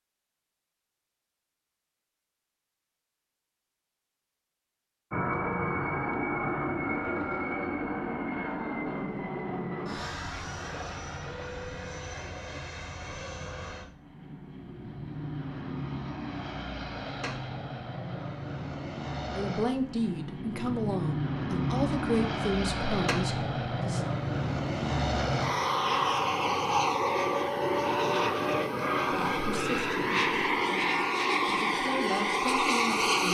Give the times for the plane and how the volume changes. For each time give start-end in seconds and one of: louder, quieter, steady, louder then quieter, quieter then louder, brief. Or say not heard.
5.1-33.2 quieter then louder.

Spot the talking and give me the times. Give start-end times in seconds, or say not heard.
19.4-24.0, 29.1-33.2.